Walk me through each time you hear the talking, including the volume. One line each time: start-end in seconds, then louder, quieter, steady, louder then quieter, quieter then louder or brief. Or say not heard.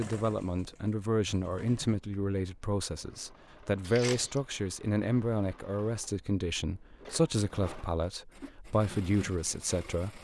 0.0-10.1 steady.